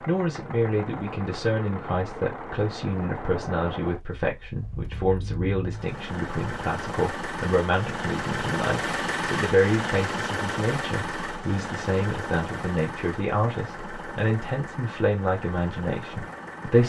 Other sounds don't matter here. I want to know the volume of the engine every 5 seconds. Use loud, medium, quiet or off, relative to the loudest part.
medium, loud, loud, medium.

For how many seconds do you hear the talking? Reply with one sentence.
You can hear the talking for 17 seconds altogether.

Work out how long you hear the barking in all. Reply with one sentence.
You can't hear the barking here.